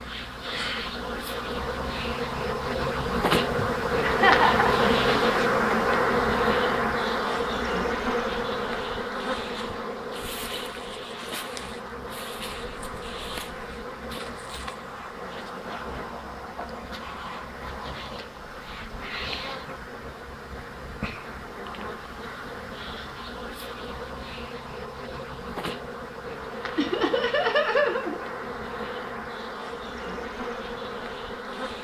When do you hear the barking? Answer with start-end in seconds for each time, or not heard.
not heard.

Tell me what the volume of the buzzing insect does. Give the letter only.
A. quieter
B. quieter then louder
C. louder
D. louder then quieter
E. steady
A.